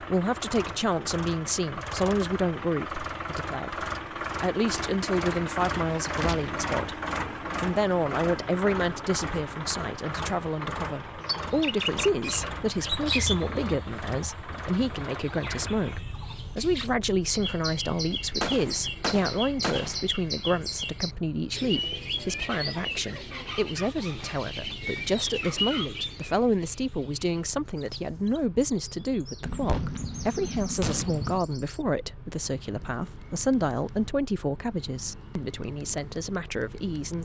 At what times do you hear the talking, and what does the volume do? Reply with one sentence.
You can hear the talking from 0.0 to 7.0 s, getting quieter then louder; and from 7.6 to 37.1 s, at a steady volume.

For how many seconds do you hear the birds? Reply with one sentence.
You can hear the birds for 26 seconds altogether.